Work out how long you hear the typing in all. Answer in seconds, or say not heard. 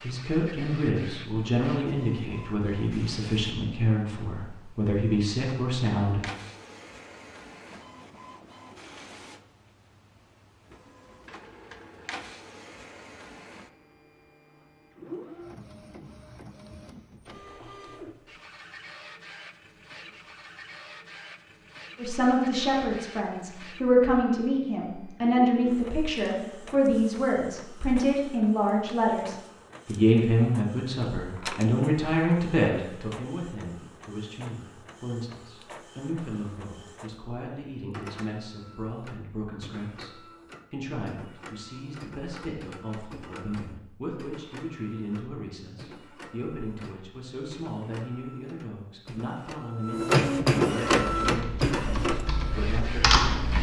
3 s.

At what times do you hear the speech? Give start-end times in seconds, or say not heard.
0.0-6.2, 21.9-53.2.